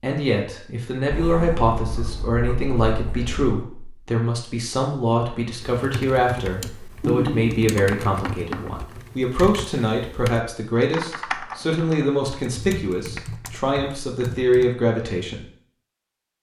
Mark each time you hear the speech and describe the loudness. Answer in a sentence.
The speech can be heard from 0.0 to 15.4 s, at a steady volume.